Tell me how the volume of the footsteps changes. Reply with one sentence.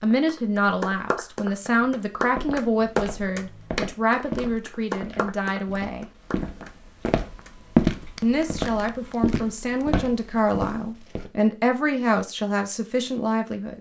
The loudness of the footsteps goes up, then down.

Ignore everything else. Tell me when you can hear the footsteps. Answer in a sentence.
You can hear the footsteps from 1.8 to 11.3 s.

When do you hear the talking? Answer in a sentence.
You can hear the talking from 0.0 to 6.1 s and from 8.2 to 13.7 s.